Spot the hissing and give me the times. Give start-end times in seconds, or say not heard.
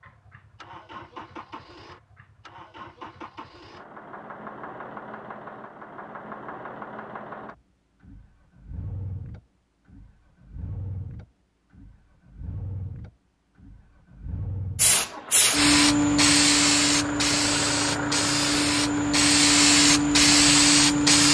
14.8-21.3.